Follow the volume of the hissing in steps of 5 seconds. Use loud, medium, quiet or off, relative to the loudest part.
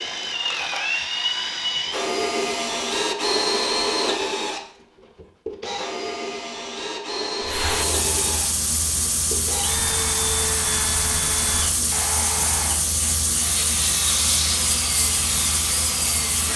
off, loud, loud, loud.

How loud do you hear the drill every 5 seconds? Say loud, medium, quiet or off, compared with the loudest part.
loud, medium, medium, medium.